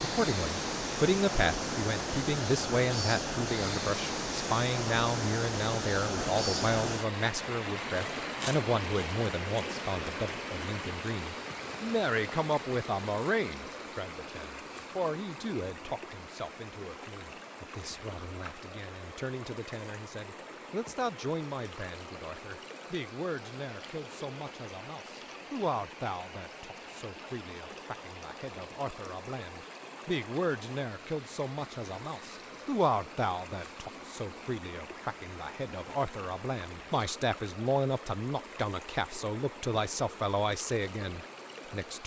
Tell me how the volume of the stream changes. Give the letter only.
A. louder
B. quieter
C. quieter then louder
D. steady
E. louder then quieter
B.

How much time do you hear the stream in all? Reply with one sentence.
You can hear the stream for 42 seconds altogether.